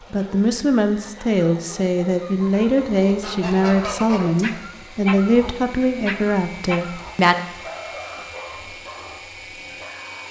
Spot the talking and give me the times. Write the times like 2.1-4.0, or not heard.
0.1-7.3.